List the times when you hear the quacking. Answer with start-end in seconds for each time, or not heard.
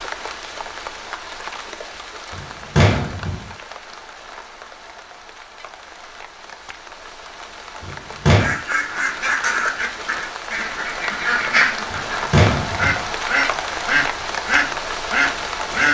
8.2-15.8.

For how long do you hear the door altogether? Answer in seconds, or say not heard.
3 s.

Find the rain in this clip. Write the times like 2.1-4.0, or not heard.
0.0-15.8.